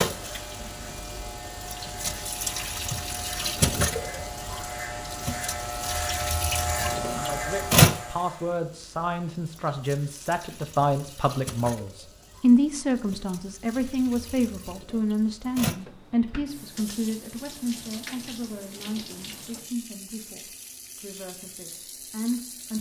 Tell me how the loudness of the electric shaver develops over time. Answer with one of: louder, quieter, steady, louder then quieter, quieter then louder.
louder.